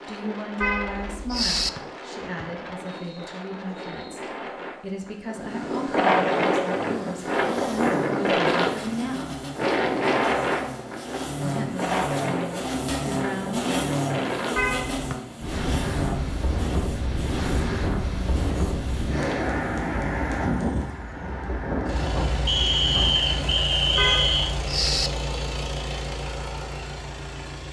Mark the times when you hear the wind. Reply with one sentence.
You can hear the wind from 0.0 to 23.6 s.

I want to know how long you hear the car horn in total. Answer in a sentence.
The car horn can be heard for 3 seconds in total.